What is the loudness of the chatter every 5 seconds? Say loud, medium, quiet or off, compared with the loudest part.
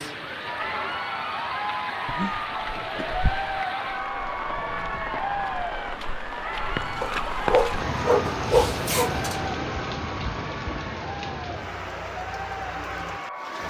loud, loud, medium.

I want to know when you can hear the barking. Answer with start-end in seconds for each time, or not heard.
2.0-3.5, 7.0-9.5.